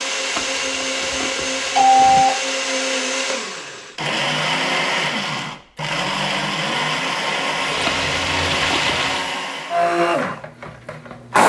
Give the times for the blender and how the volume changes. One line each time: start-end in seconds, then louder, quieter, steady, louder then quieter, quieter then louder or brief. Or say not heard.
0.0-11.4 steady.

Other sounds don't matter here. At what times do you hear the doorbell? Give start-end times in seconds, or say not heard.
0.3-2.4, 7.8-8.9.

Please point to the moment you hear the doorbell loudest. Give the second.
2 s.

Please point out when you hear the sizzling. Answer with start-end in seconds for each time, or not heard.
7.7-9.4.